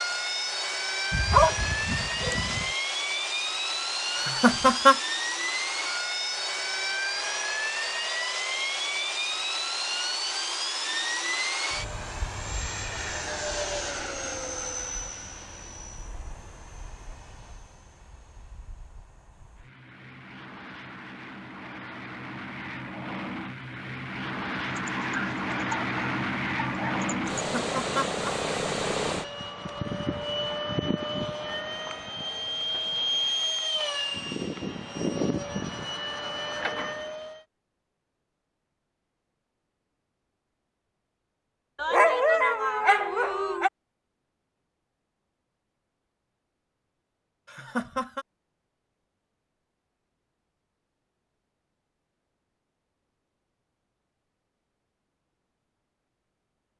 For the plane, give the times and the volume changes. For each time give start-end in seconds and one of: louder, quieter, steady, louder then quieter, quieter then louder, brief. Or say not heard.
0.0-37.5 quieter then louder.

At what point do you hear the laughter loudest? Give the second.
5 s.